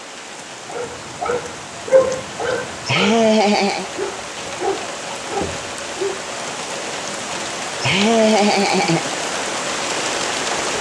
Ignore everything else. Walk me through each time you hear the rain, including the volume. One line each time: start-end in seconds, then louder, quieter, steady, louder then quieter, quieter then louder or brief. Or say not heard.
0.0-10.7 louder.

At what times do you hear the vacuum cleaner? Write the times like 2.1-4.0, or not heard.
not heard.